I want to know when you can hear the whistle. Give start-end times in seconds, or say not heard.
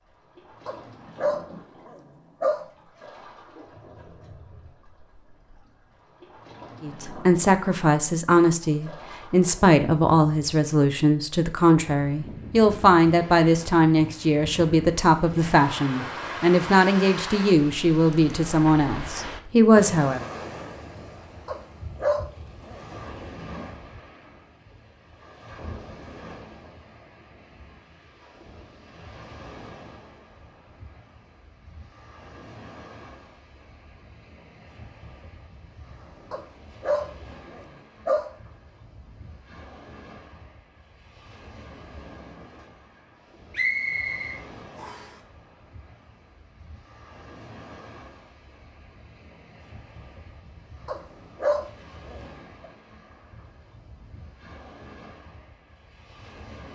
43.5-45.1.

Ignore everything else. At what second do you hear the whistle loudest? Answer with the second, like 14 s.
44 s.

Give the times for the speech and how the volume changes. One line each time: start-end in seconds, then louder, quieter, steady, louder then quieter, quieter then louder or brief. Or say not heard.
6.8-20.2 steady.